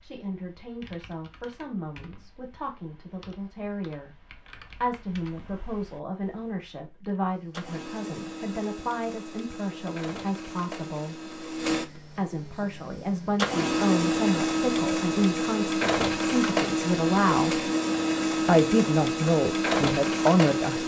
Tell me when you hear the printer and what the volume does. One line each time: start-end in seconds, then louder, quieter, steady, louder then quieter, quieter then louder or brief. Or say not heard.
7.3-20.8 louder.